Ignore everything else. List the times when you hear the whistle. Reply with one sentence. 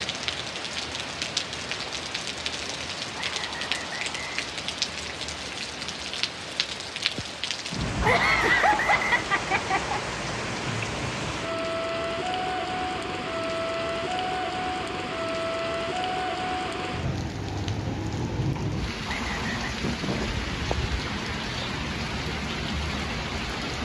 You can hear the whistle from 3.1 to 4.4 s, from 8.0 to 9.2 s and from 19.1 to 19.8 s.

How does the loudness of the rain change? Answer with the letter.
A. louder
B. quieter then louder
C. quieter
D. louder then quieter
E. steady
E.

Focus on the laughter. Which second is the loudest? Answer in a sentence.
The volume of the laughter peaks at 9 seconds.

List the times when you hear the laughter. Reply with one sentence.
The laughter can be heard from 8.1 to 10.0 s and from 19.8 to 20.4 s.